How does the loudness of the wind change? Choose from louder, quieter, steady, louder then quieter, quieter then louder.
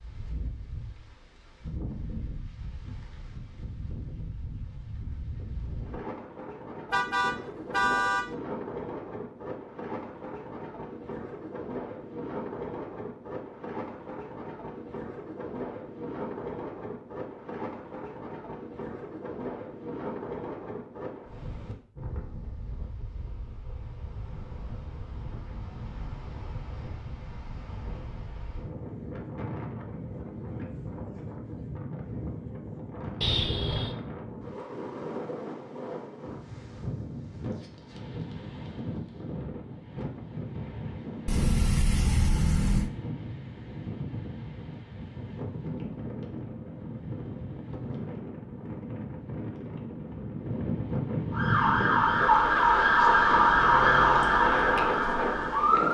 louder.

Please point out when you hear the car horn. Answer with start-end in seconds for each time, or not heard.
6.9-8.3, 33.2-34.0, 41.2-42.9.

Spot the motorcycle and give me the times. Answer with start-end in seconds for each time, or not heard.
not heard.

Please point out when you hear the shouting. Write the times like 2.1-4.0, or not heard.
not heard.